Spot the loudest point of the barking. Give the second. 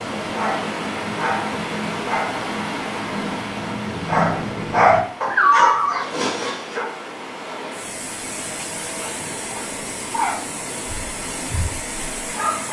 6 s.